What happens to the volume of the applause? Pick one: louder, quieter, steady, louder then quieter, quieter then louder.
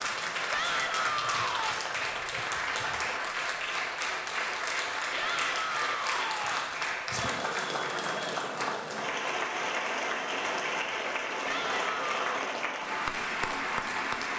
steady.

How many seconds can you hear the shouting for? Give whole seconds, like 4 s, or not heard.
4 s.